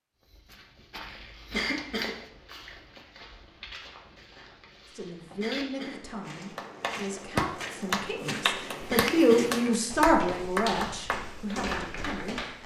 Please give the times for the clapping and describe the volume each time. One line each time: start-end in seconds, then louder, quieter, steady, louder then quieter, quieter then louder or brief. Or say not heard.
6.5-12.6 quieter.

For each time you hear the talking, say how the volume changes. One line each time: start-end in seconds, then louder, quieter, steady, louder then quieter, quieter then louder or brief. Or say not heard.
5.0-12.6 louder then quieter.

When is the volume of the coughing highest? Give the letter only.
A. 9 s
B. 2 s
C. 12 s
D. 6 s
B.